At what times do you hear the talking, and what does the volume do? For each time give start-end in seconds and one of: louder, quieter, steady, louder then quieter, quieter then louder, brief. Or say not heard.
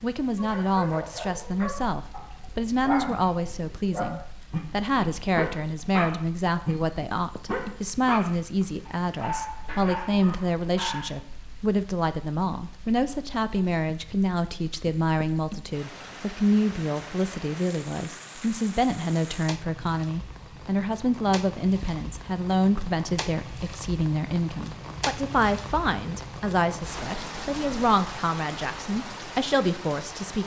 0.0-30.4 steady.